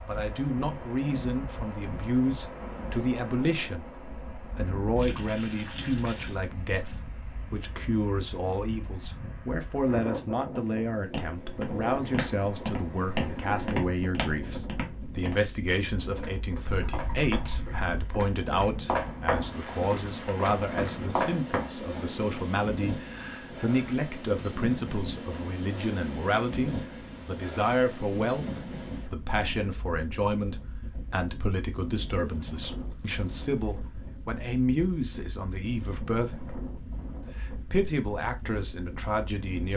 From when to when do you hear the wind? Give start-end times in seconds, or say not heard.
0.0-39.7.